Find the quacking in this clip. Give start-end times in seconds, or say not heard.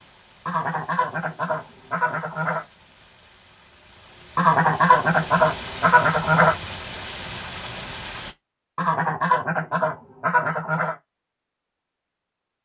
0.5-2.6, 4.3-6.5, 8.8-10.9.